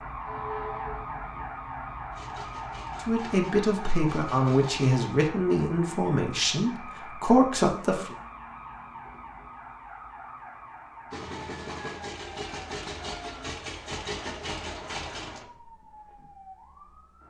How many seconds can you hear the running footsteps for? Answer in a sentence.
The running footsteps can't be heard in this clip.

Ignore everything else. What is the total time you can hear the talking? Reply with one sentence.
You can hear the talking for 5 seconds altogether.